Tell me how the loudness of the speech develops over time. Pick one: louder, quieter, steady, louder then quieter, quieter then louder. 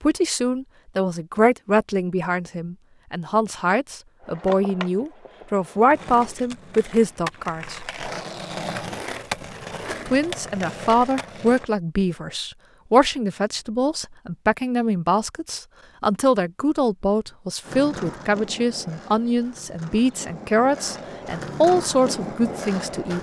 steady.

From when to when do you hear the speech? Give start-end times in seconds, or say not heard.
0.0-7.8, 10.1-23.1.